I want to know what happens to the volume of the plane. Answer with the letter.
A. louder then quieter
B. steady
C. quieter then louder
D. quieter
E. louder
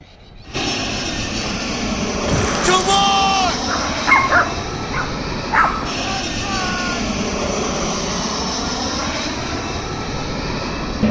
B.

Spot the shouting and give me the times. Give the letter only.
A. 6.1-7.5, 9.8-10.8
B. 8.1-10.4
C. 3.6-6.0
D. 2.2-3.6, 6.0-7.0
D.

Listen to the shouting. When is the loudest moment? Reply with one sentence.
The loudest moment of the shouting is at 3 seconds.